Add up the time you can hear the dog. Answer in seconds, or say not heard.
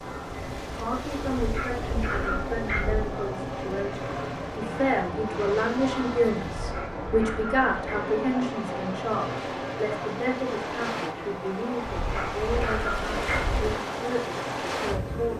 5 s.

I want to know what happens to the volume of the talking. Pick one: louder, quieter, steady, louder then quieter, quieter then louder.
louder then quieter.